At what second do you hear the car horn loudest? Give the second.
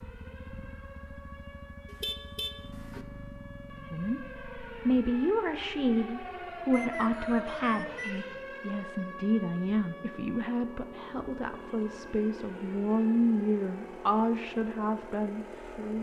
2 s.